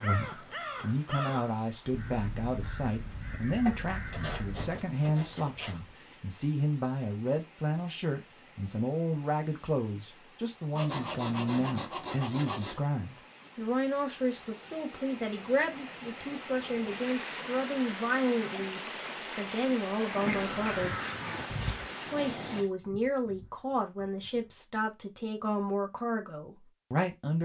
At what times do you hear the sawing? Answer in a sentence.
You can hear the sawing from 3.6 to 5.8 s, from 10.8 to 12.8 s and from 20.2 to 22.7 s.